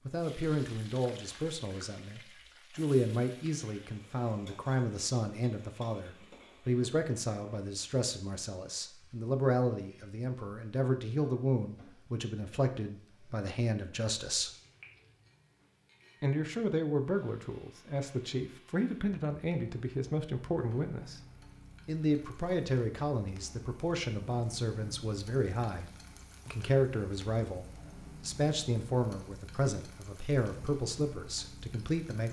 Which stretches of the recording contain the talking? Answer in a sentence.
The talking can be heard from 0.1 to 14.5 s, from 16.2 to 21.2 s and from 21.9 to 32.2 s.